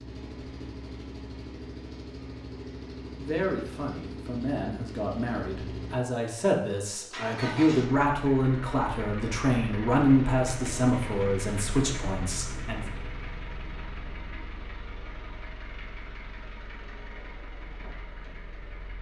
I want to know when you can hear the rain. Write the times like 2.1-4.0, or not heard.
not heard.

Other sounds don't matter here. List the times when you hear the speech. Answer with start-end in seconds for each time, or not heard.
3.0-12.8.